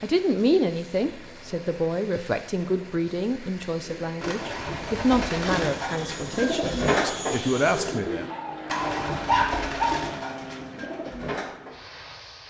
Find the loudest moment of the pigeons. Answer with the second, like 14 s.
7 s.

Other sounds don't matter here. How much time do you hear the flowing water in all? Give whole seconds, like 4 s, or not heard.
not heard.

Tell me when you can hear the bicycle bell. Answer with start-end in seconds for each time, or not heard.
not heard.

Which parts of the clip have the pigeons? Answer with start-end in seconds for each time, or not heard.
4.0-11.8.